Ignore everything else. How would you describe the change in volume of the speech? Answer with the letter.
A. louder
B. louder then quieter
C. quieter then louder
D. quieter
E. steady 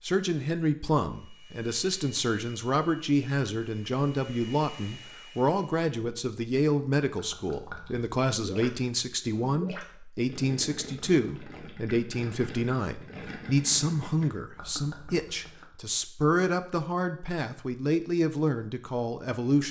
E.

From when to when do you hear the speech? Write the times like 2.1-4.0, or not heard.
0.0-19.6.